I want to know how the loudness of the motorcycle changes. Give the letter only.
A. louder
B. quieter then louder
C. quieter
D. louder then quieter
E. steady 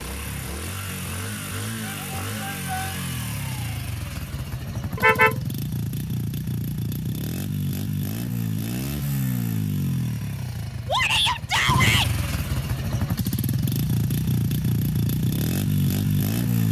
A.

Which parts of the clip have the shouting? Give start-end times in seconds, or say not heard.
1.8-3.0, 10.8-12.1.